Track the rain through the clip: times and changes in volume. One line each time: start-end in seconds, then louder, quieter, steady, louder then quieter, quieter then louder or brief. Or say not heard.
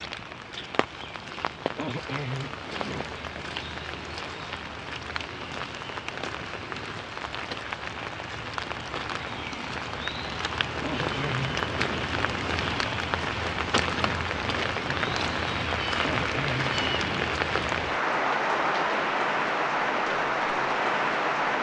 0.0-21.5 louder.